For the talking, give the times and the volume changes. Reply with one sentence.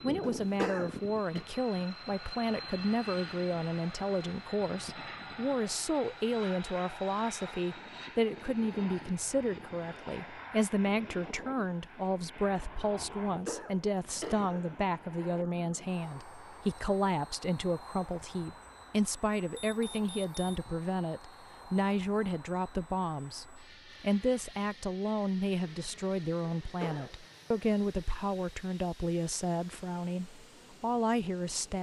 You can hear the talking from 0.0 to 31.7 s, at a steady volume.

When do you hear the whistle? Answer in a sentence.
You can't hear the whistle here.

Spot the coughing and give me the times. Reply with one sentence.
You can hear the coughing from 0.2 to 1.4 s, from 13.2 to 14.9 s and from 26.4 to 27.1 s.